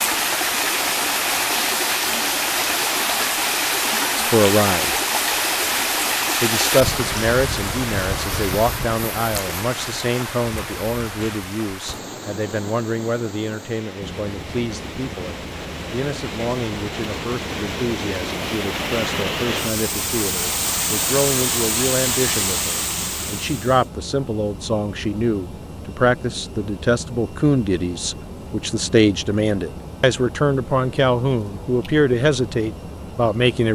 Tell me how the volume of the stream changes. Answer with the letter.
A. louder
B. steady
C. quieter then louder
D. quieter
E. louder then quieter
C.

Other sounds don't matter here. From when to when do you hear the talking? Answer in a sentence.
You can hear the talking from 4.2 to 5.0 s and from 6.4 to 33.7 s.